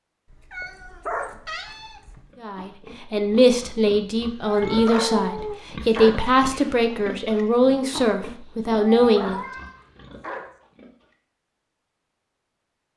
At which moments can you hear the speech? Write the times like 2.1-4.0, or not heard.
2.4-9.4.